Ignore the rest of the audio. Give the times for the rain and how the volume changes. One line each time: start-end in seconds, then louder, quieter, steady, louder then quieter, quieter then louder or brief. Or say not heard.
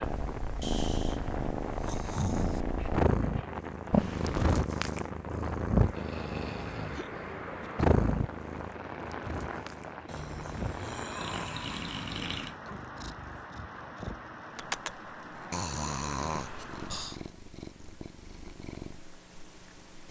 0.0-17.3 steady.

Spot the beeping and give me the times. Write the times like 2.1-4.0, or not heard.
3.9-4.6.